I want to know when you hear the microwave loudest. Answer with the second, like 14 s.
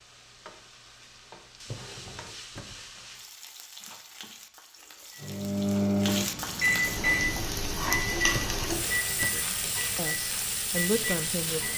6 s.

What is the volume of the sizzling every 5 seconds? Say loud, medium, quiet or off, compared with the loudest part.
quiet, loud, loud.